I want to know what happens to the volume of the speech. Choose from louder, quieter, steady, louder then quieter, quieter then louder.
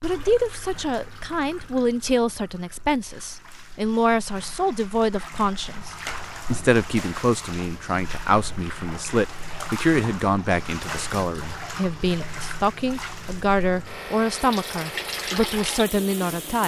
steady.